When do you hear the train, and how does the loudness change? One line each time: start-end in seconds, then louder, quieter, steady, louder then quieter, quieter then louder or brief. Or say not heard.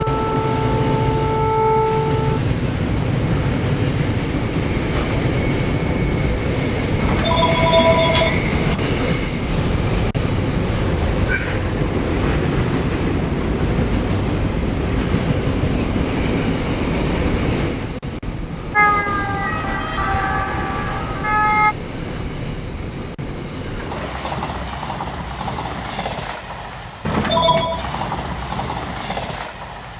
0.0-29.9 quieter.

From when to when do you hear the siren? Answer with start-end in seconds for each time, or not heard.
0.0-2.4, 18.7-21.8.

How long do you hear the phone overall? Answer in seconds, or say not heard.
3 s.